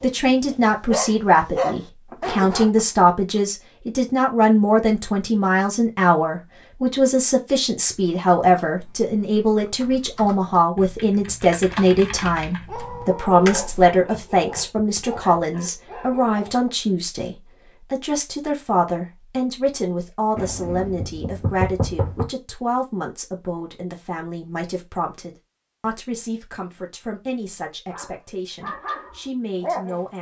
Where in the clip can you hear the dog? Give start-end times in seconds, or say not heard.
0.0-2.8, 12.6-16.6, 27.9-30.0.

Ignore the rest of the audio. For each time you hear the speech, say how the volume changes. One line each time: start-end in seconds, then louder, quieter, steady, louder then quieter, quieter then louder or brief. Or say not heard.
0.0-30.1 quieter.